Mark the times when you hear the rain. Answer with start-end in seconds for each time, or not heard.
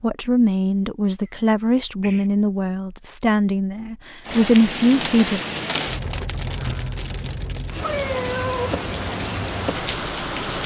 4.2-10.6.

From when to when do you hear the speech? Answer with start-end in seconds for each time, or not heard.
0.0-5.4.